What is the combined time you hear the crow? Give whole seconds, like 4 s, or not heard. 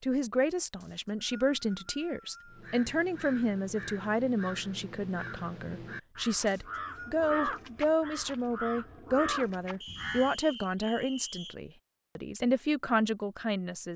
8 s.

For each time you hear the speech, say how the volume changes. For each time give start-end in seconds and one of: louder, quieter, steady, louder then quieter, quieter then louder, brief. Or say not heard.
0.0-13.9 steady.